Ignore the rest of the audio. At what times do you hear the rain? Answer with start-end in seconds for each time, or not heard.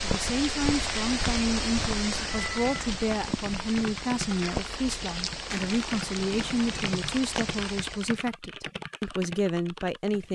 0.0-8.2.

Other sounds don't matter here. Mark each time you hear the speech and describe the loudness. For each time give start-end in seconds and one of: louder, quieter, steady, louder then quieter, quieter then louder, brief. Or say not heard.
0.0-10.2 steady.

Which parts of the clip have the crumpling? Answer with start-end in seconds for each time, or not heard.
5.5-6.0.